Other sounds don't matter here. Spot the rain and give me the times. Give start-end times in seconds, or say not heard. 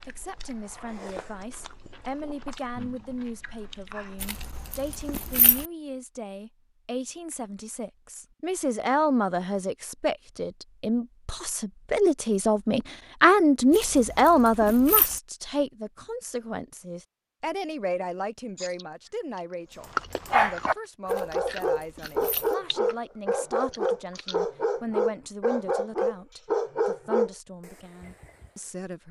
not heard.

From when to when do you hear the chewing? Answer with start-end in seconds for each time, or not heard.
0.0-4.7, 18.6-24.4.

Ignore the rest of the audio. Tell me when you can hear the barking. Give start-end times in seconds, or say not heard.
19.8-28.4.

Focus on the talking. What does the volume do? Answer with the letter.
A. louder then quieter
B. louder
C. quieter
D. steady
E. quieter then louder
A.